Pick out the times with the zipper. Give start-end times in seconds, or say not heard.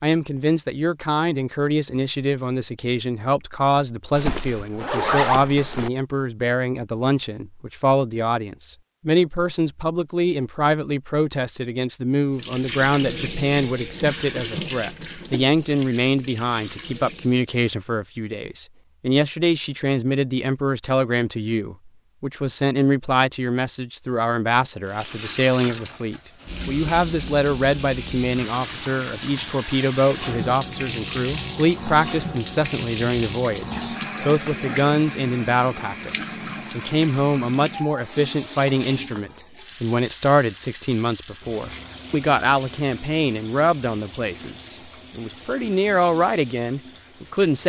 4.2-5.9, 28.4-29.6.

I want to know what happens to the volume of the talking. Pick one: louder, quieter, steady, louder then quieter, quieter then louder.
steady.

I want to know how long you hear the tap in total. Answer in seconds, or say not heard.
28 s.